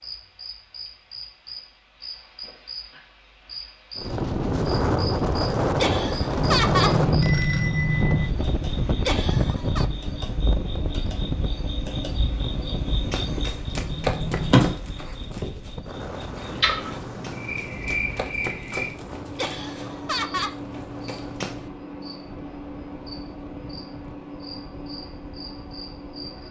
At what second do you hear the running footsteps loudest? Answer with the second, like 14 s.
14 s.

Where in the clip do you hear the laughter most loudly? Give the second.
7 s.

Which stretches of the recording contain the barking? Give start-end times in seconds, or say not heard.
not heard.